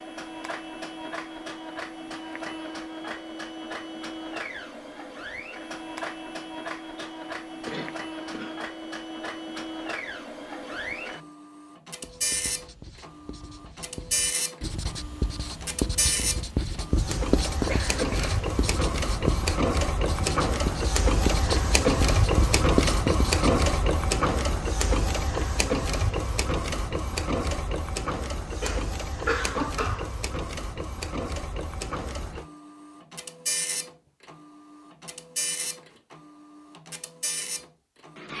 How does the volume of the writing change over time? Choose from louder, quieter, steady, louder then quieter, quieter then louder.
louder.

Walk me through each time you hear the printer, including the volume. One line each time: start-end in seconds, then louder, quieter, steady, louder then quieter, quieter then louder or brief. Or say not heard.
0.0-38.3 louder then quieter.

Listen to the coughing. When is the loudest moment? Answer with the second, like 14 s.
29 s.